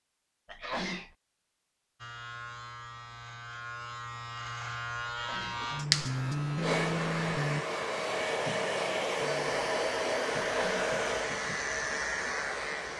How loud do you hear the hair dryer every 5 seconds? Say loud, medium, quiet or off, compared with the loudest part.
off, loud, loud.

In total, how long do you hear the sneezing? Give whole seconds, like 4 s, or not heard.
2 s.